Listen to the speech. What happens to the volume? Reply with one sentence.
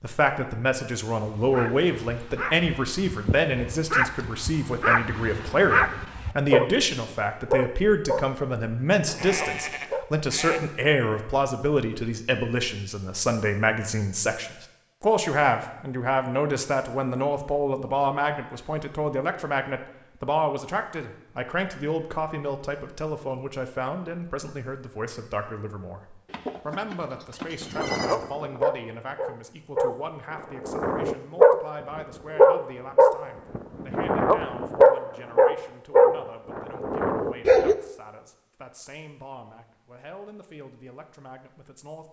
The volume of the speech goes down.